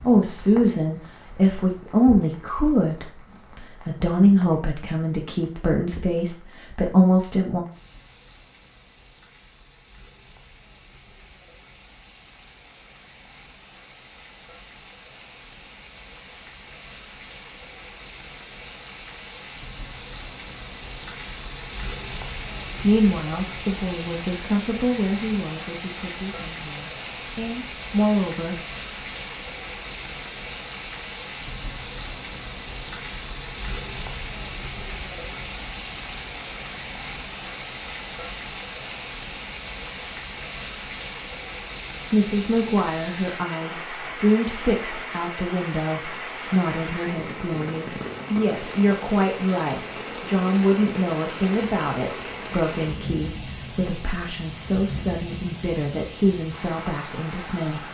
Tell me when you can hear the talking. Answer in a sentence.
You can hear the talking from 0.0 to 7.6 s, from 22.8 to 28.6 s and from 42.1 to 57.8 s.